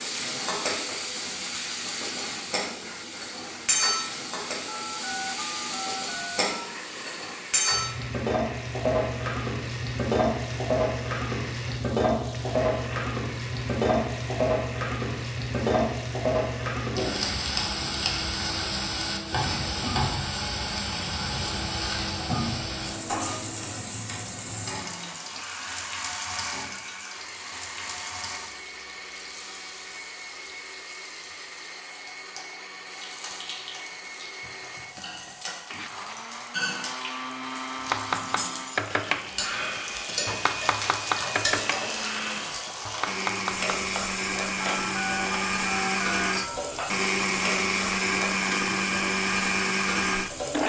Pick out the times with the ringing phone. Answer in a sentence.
You can hear the ringing phone from 4.7 to 6.7 s and from 44.6 to 46.6 s.